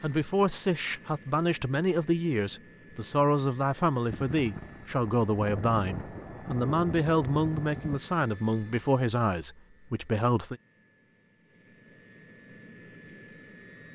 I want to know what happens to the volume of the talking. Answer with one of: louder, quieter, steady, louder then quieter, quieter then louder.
steady.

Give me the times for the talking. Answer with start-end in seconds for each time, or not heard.
0.0-10.6.